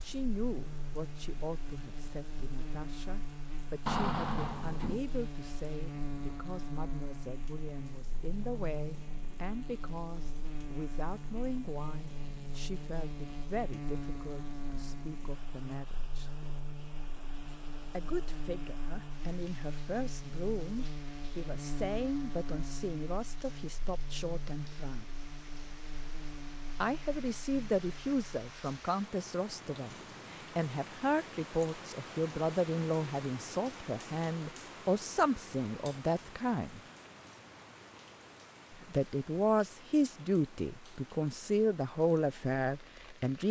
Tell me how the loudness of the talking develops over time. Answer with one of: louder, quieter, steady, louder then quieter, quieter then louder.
louder.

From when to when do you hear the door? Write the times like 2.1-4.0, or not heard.
3.9-5.0.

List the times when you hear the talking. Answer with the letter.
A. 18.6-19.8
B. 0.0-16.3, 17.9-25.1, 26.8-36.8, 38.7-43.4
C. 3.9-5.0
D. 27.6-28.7
B.